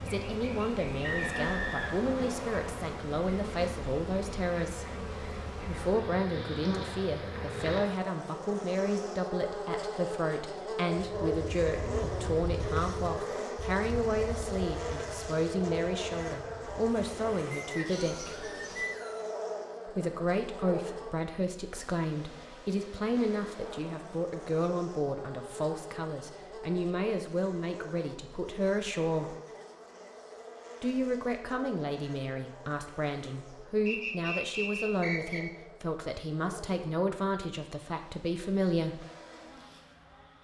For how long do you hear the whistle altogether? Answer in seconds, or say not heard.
5 s.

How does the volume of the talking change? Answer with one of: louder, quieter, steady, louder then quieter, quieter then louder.
steady.